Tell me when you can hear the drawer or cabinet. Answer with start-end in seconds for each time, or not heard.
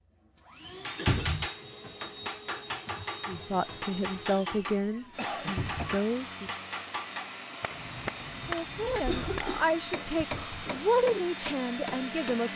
1.1-1.5, 5.5-6.0, 10.3-10.8.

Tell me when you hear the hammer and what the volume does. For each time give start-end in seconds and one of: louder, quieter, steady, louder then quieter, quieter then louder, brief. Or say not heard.
0.8-12.4 steady.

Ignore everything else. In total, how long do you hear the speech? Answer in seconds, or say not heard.
7 s.